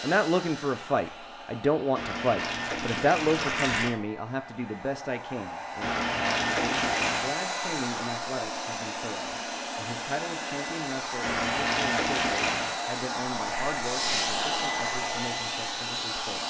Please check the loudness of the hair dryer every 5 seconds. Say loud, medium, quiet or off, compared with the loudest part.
medium, loud, loud, loud.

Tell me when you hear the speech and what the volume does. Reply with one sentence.
The speech can be heard from 0.0 to 16.4 s, getting quieter.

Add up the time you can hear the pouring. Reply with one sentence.
You can hear the pouring for 5 seconds altogether.